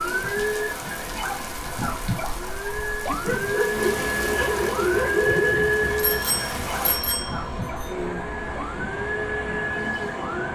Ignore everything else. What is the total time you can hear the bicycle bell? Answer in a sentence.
You can hear the bicycle bell for 2 seconds altogether.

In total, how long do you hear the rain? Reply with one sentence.
The rain can be heard for 7 seconds in total.